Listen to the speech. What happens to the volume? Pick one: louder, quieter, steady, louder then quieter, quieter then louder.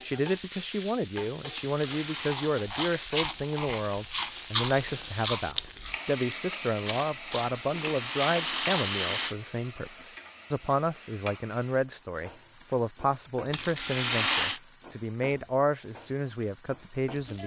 steady.